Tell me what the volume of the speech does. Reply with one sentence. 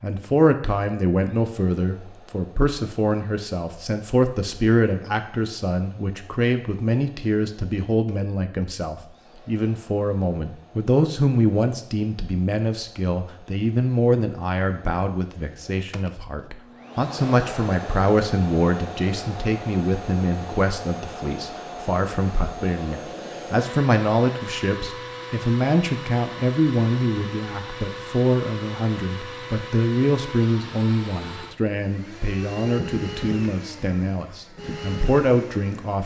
The loudness of the speech stays about the same.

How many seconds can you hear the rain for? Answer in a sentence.
The rain can't be heard in this clip.